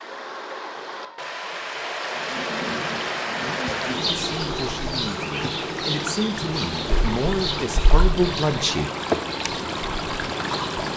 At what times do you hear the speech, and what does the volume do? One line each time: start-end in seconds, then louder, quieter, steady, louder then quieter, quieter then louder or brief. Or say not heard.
3.5-8.9 louder.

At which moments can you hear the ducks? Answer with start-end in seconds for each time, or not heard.
not heard.